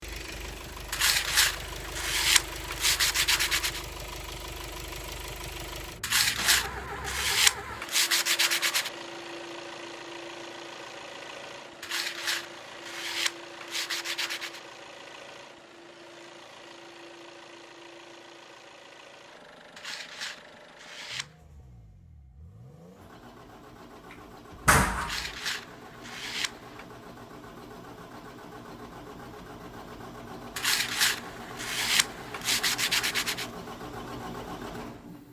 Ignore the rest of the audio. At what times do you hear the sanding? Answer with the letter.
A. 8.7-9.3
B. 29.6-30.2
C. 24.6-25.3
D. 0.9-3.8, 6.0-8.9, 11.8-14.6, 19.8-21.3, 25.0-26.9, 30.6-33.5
D.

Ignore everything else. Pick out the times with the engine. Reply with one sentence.
You can hear the engine from 0.0 to 35.2 s.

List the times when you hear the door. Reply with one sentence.
The door can be heard from 24.6 to 25.3 s.